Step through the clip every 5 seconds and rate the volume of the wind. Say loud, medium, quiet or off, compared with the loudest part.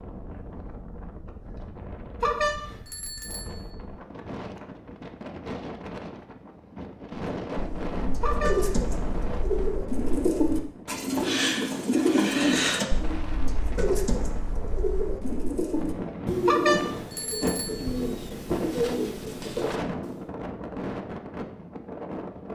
medium, loud, medium, loud, loud.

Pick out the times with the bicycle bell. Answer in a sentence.
The bicycle bell can be heard from 2.2 to 3.7 s, from 8.2 to 8.7 s and from 16.4 to 17.9 s.